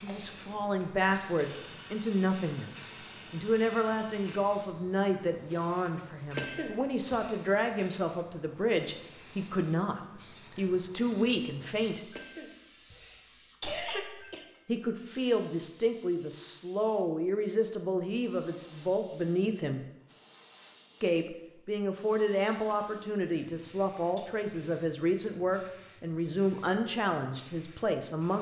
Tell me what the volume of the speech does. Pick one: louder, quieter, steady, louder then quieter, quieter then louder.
steady.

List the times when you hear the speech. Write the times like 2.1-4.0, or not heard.
0.0-12.0, 14.7-19.9, 21.0-28.3.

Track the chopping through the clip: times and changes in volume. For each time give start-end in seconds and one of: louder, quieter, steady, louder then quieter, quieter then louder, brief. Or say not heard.
not heard.